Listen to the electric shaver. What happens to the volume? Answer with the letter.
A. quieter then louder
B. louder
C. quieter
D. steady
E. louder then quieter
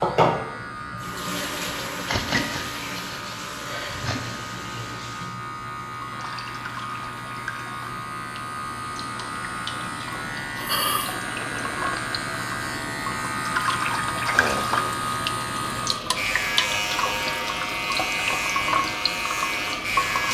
B.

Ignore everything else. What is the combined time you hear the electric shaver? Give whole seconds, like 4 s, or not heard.
20 s.